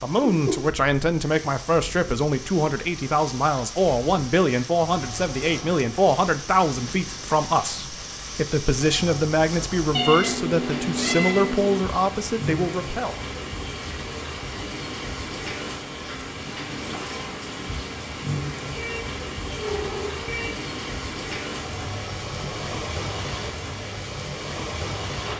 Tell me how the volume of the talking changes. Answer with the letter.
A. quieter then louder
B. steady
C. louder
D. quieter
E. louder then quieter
B.